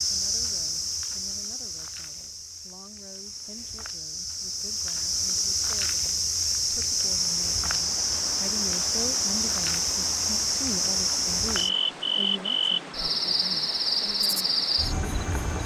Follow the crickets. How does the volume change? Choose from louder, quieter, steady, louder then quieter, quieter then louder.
louder.